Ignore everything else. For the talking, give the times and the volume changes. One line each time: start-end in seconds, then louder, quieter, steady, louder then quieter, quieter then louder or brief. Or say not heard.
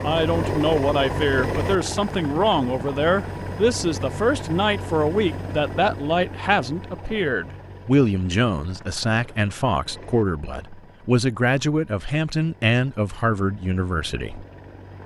0.0-14.4 steady.